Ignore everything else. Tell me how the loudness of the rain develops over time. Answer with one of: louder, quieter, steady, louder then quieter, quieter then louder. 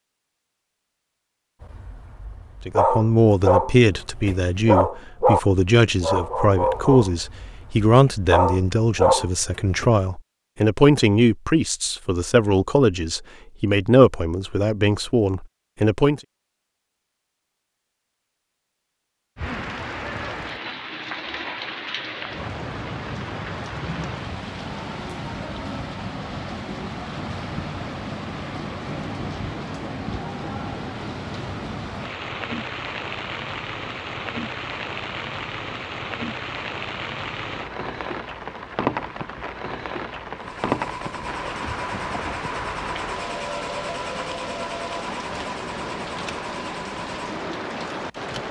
steady.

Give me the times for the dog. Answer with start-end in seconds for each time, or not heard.
1.6-9.9.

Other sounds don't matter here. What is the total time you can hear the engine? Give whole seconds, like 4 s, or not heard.
8 s.